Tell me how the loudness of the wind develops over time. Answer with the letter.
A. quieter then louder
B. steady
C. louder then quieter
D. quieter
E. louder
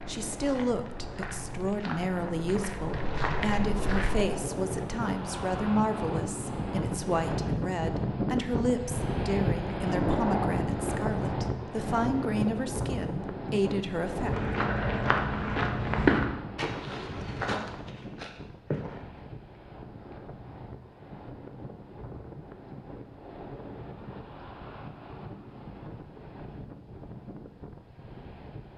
C.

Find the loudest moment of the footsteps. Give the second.
16 s.